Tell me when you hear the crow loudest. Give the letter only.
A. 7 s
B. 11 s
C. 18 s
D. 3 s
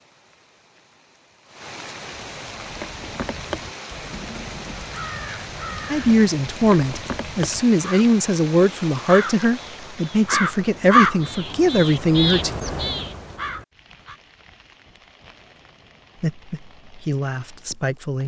B.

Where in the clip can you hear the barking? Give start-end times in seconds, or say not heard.
not heard.